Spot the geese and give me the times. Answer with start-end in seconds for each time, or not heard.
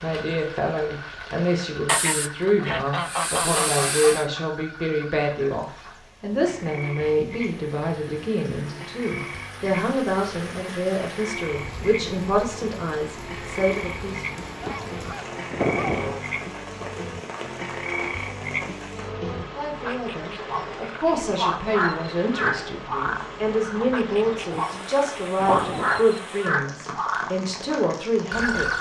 1.9-4.2, 14.6-16.2, 24.5-26.1.